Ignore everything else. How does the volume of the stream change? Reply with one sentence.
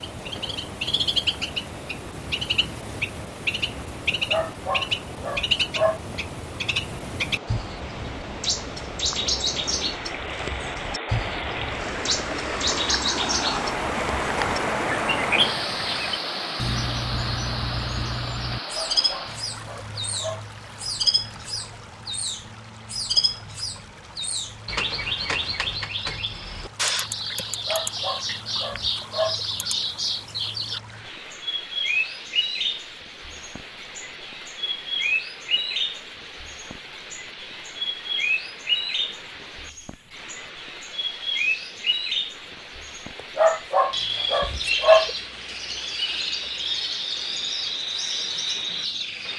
The loudness of the stream goes up, then down.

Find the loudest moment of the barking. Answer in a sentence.
The volume of the barking peaks at 45 seconds.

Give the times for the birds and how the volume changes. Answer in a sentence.
You can hear the birds from 0.0 to 49.3 s, at a steady volume.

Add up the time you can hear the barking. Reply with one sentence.
The barking can be heard for 7 seconds in total.